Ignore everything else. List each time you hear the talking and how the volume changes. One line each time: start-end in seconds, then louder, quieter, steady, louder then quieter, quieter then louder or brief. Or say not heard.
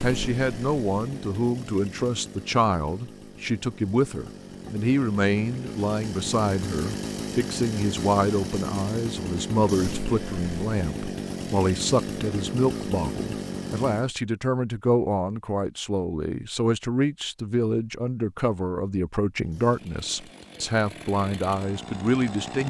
0.0-22.6 steady.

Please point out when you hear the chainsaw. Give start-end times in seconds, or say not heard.
0.0-14.1, 19.4-22.6.